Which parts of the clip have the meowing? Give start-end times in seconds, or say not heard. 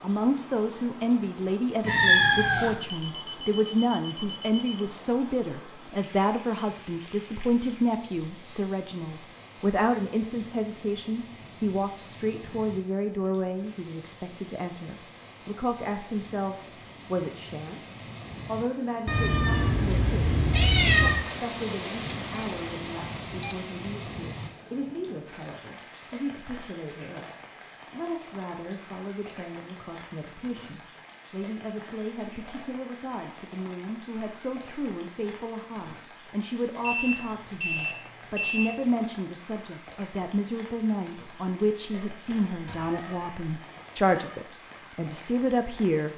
1.8-2.8, 19.1-21.2, 41.9-44.5.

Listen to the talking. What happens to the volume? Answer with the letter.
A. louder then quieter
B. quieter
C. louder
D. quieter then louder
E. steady
D.